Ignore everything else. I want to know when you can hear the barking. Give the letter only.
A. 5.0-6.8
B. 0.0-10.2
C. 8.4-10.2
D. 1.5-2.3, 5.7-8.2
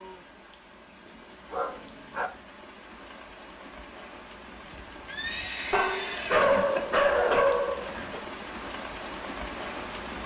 D.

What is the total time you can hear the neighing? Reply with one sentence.
The neighing can be heard for 2 seconds in total.